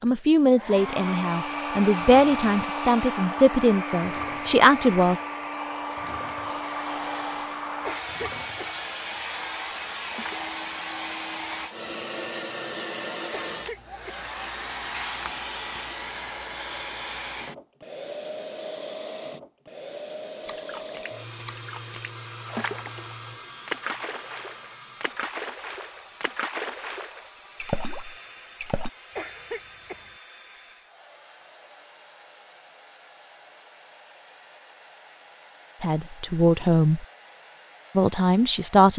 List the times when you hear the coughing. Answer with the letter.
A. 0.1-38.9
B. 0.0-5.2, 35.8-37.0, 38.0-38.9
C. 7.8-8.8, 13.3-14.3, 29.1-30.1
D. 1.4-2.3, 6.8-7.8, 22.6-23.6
C.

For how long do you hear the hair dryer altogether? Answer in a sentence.
You can hear the hair dryer for 39 seconds altogether.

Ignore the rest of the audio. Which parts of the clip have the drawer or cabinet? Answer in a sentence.
The drawer or cabinet can't be heard in this clip.